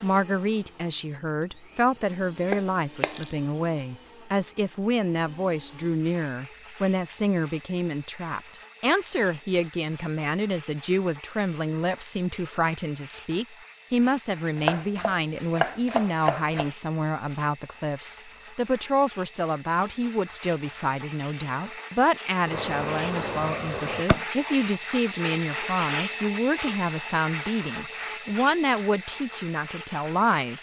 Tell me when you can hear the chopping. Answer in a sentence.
The chopping can be heard from 2.5 to 3.2 s, from 14.6 to 16.7 s and from 22.4 to 24.2 s.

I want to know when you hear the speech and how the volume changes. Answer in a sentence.
You can hear the speech from 0.0 to 30.5 s, at a steady volume.